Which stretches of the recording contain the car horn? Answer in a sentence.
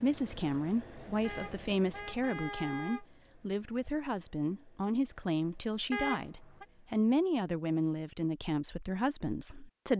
You can hear the car horn from 1.2 to 3.0 s and from 5.9 to 6.7 s.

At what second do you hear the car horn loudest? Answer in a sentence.
The loudest moment of the car horn is at 6 seconds.